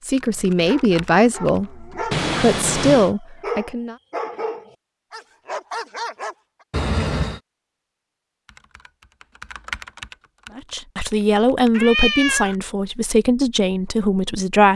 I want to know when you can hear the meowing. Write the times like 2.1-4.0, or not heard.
2.1-3.1, 6.7-7.4, 11.7-12.6.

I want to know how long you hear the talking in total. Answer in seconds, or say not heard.
8 s.